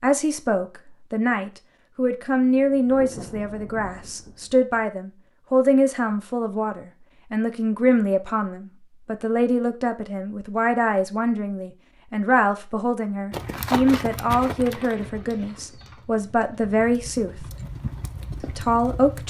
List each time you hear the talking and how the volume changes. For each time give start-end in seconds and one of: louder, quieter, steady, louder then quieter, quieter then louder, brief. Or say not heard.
0.0-17.4 steady
18.6-19.2 brief.